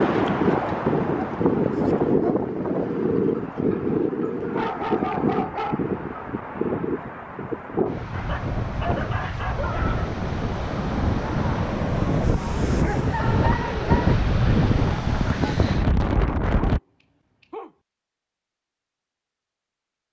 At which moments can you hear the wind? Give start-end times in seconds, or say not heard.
0.0-16.8.